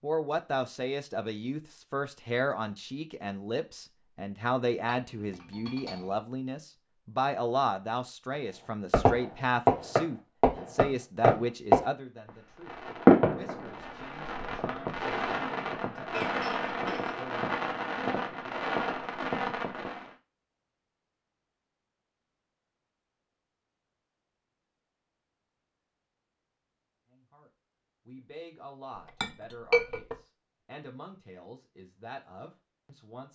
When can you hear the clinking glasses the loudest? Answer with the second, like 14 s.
30 s.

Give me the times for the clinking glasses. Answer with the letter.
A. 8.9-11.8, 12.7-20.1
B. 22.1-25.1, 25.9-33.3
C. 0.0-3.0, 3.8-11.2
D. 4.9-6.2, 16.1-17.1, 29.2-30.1
D.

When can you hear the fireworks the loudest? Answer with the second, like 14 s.
13 s.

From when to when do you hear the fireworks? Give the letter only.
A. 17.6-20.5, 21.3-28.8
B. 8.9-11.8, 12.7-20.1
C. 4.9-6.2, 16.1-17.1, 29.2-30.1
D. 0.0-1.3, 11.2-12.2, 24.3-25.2
B.